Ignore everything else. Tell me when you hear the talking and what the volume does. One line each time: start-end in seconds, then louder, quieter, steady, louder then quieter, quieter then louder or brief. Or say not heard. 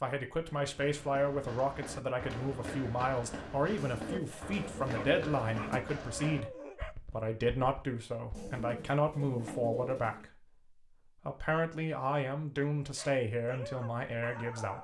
0.0-14.7 steady.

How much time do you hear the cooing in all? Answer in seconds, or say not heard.
4 s.